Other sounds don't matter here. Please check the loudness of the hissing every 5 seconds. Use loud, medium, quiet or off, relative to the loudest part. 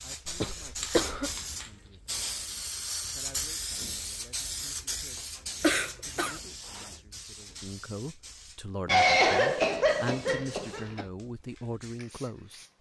loud, medium, quiet.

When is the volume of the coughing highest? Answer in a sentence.
The volume of the coughing peaks at 9 seconds.